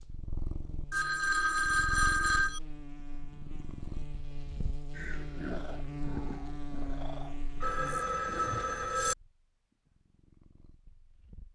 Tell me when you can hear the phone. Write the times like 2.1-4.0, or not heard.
0.9-2.6, 7.6-9.2.